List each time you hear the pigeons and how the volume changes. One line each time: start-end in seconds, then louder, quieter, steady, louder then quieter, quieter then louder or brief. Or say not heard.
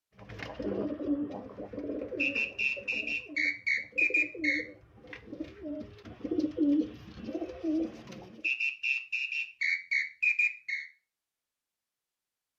0.2-8.5 quieter then louder.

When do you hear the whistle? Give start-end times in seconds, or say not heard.
2.1-4.7, 8.4-10.8.